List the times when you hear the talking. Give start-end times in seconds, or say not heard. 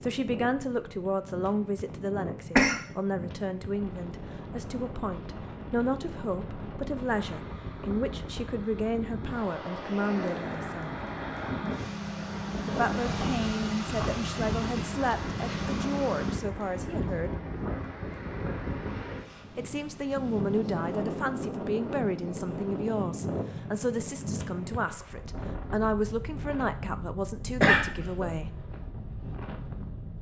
0.0-10.9, 12.7-17.3, 19.6-28.5.